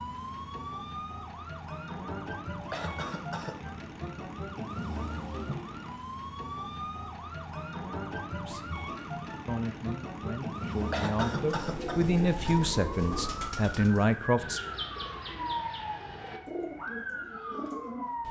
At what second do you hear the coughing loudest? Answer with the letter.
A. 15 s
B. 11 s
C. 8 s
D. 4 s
B.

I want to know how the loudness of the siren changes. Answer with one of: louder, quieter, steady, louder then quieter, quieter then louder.
steady.